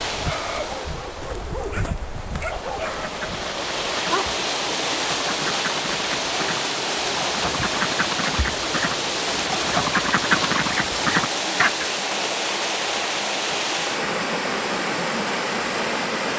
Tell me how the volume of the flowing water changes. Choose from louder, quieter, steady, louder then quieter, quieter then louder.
louder.